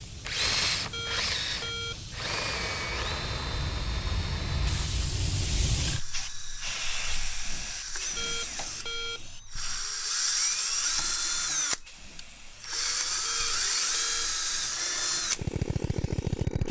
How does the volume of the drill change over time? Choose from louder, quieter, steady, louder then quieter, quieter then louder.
quieter then louder.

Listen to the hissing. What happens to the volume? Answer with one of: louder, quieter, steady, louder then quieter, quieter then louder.
louder then quieter.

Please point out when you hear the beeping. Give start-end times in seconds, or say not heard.
0.9-2.0, 8.2-9.3, 13.2-14.3.